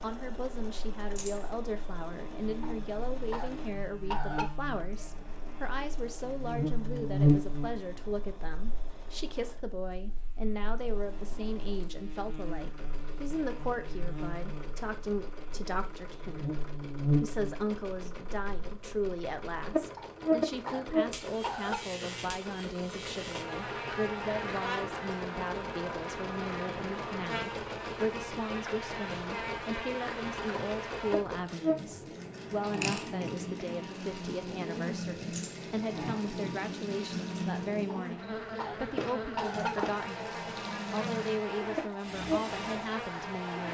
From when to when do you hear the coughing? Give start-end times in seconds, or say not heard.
2.6-3.5, 4.1-4.5, 19.9-21.8, 37.9-39.9.